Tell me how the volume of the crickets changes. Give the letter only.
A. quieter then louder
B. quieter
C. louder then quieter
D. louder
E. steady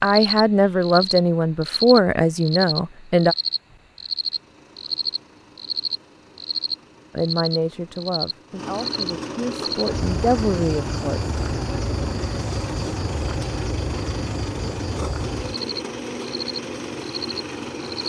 B.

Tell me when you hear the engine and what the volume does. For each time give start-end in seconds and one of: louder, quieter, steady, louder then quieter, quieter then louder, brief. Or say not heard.
4.0-18.0 louder.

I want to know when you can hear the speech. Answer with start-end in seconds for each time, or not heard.
0.0-3.4, 7.2-11.2.